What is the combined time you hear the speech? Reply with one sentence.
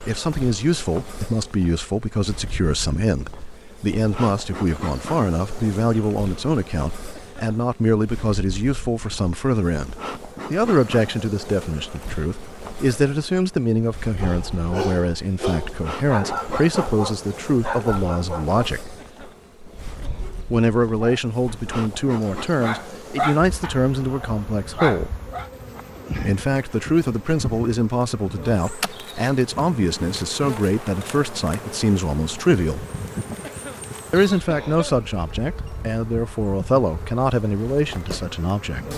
The speech can be heard for 35 seconds in total.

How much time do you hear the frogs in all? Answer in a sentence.
The frogs can't be heard in this clip.